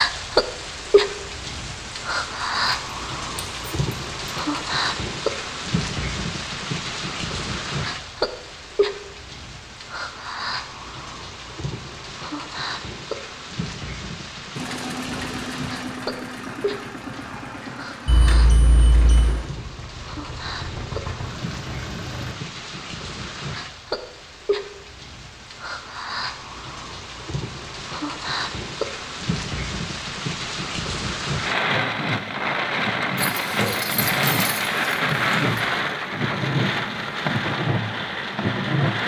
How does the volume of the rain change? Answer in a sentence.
The volume of the rain goes down, then up.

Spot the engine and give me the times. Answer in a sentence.
The engine can be heard from 14.6 to 22.4 s.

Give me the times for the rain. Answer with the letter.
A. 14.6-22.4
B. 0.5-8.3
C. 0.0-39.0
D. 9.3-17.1
C.